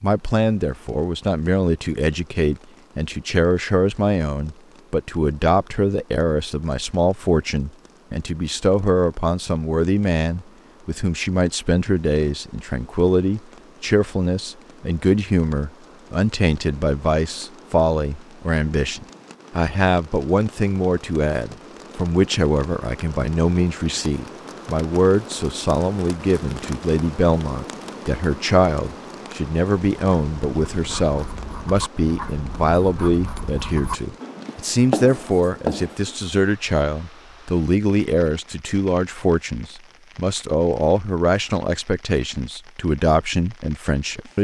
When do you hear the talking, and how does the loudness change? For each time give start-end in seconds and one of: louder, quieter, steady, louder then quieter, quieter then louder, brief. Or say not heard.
0.0-44.3 steady.